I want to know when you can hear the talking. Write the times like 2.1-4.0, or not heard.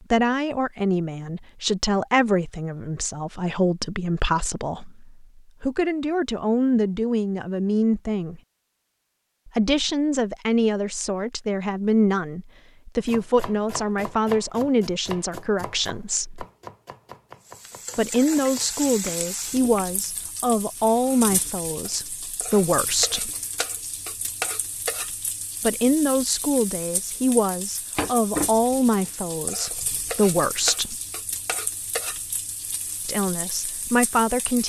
0.1-8.4, 9.4-16.4, 17.9-23.3, 25.6-30.9, 33.0-34.6.